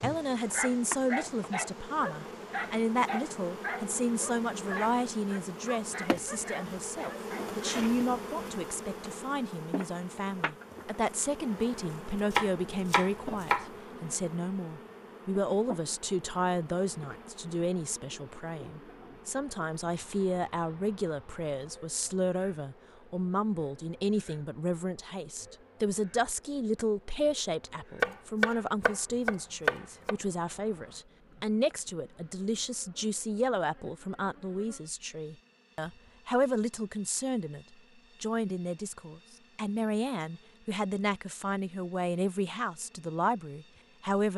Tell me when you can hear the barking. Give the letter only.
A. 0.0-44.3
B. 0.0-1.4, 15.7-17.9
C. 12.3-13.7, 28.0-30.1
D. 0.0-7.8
D.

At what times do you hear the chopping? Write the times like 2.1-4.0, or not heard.
12.3-13.7, 28.0-30.1.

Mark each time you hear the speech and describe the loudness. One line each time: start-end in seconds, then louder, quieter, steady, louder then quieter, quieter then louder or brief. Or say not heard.
0.0-44.3 steady.